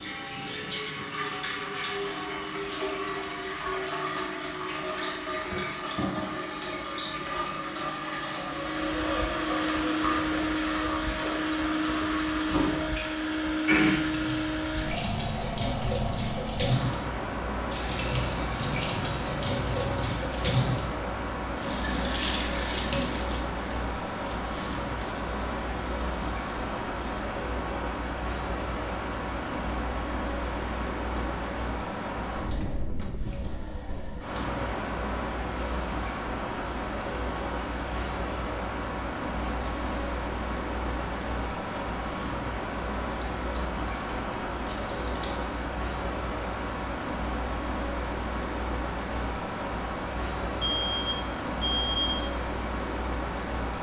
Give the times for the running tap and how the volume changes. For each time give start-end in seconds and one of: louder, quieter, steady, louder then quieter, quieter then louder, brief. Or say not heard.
0.0-53.7 quieter.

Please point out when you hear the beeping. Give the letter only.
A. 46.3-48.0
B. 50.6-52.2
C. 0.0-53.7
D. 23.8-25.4
B.